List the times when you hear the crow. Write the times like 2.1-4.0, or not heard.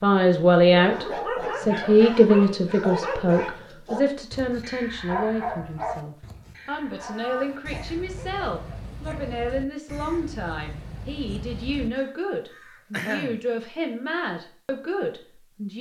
7.0-13.6.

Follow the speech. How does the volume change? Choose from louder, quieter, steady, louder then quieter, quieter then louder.
quieter.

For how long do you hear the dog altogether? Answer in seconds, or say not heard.
9 s.